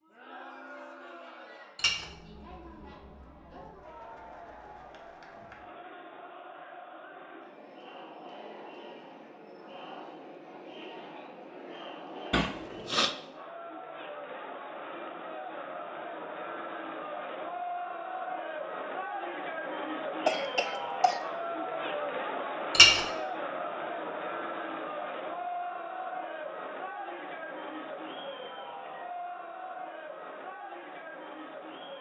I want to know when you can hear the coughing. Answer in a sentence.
You can hear the coughing from 12.3 to 13.2 s and from 20.2 to 21.2 s.